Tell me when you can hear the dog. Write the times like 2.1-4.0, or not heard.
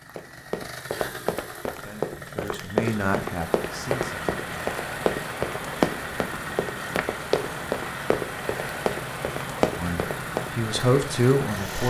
not heard.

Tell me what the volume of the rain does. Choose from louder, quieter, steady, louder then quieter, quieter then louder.
steady.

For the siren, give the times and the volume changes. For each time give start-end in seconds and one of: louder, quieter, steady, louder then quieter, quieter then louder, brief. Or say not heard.
not heard.